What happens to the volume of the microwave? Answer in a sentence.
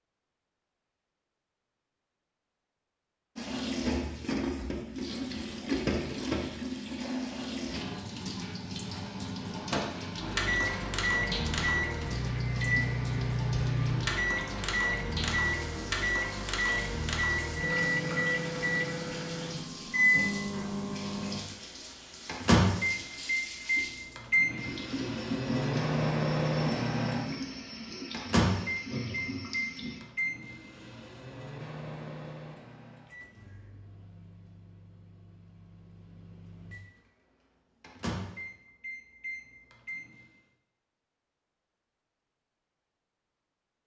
The loudness of the microwave goes down.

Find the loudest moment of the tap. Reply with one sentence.
The loudest moment of the tap is at 6 seconds.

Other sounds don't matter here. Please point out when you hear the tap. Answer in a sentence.
The tap can be heard from 3.4 to 30.0 s.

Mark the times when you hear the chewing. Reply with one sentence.
You can't hear the chewing here.